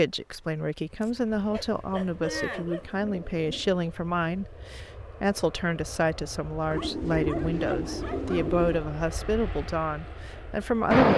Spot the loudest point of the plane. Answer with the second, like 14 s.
11 s.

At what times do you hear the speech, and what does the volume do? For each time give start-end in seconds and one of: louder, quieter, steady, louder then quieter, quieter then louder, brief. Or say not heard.
0.0-11.1 steady.